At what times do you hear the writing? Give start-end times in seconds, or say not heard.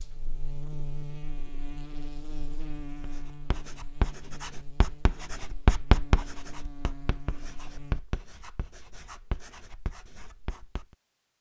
3.0-10.9.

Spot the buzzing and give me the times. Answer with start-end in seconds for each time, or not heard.
0.0-8.1.